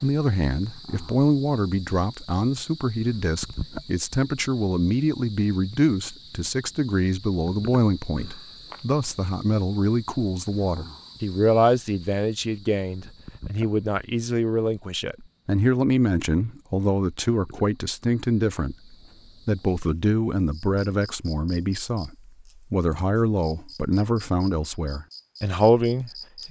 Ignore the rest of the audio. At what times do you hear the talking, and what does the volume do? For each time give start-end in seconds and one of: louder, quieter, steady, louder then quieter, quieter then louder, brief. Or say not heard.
0.0-26.4 steady.